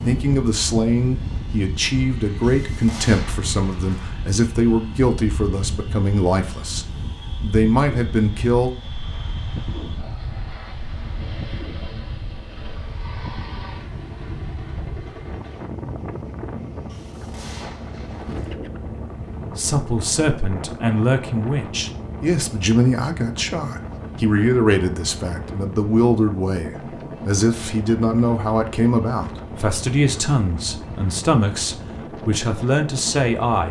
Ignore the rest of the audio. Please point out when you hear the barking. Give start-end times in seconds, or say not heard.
not heard.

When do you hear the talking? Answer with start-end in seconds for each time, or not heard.
0.1-8.8, 19.6-33.6.